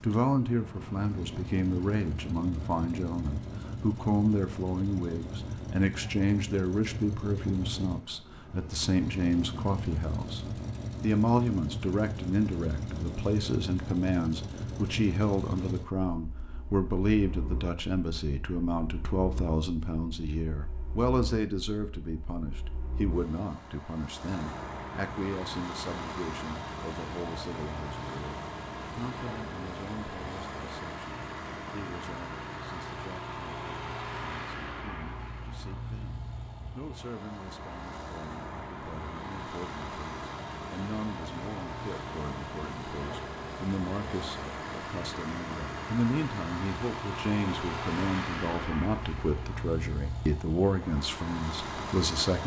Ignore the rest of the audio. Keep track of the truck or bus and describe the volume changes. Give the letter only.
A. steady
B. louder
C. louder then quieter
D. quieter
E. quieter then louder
A.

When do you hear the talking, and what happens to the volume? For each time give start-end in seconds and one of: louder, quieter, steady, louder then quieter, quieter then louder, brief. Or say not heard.
0.0-52.4 quieter then louder.